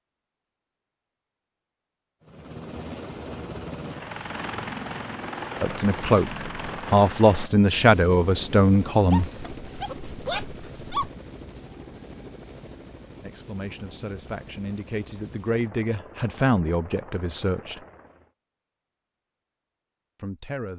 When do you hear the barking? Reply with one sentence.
You can hear the barking from 9.1 to 11.1 s.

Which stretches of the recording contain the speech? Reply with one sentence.
The speech can be heard from 5.6 to 9.2 s, from 13.2 to 17.8 s and from 20.1 to 20.7 s.